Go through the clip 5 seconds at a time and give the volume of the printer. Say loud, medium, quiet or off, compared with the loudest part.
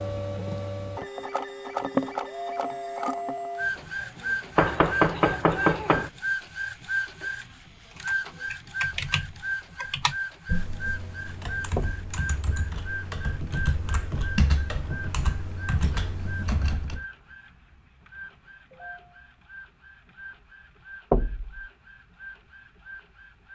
loud, loud, medium, quiet, quiet.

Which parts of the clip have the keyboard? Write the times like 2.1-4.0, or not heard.
8.0-17.0.